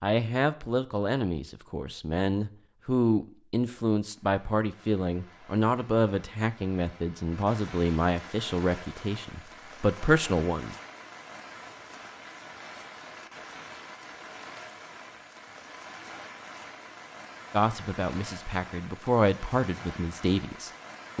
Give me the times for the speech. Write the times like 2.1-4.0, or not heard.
0.0-10.8, 17.5-21.1.